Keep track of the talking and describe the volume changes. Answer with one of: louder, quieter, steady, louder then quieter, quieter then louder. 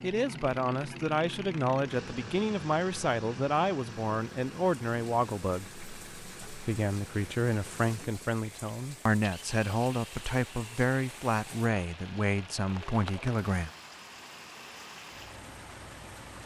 steady.